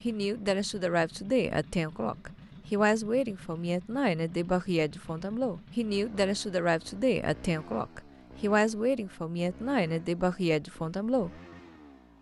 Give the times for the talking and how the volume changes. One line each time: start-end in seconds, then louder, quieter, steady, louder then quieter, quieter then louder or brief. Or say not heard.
0.0-11.3 steady.